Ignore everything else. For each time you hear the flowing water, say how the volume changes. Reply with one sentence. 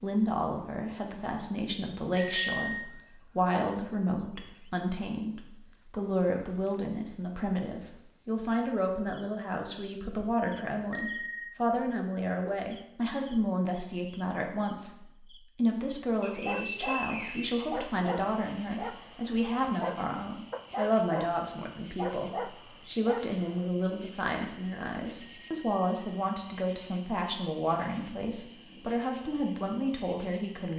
You can't hear the flowing water here.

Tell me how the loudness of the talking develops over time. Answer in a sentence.
The volume of the talking stays about the same.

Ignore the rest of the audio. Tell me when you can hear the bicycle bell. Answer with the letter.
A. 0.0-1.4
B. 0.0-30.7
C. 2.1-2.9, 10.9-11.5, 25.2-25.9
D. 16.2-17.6
C.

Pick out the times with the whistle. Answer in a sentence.
You can hear the whistle from 16.2 to 17.6 s.